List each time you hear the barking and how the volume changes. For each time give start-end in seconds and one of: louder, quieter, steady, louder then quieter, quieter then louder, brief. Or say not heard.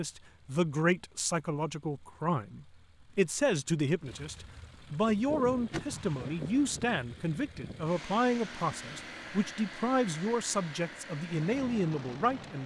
not heard.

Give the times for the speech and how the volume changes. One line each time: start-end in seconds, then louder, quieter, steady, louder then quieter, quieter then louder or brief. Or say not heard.
0.0-12.6 steady.